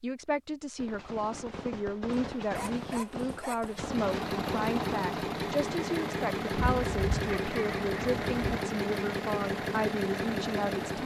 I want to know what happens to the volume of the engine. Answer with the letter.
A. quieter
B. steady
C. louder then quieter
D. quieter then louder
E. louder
B.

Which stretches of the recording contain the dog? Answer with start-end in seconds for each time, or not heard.
2.5-3.8, 6.5-8.6.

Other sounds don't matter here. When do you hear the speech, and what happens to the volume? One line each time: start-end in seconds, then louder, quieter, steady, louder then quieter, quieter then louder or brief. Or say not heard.
0.0-11.0 steady.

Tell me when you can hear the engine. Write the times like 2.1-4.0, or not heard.
3.6-11.0.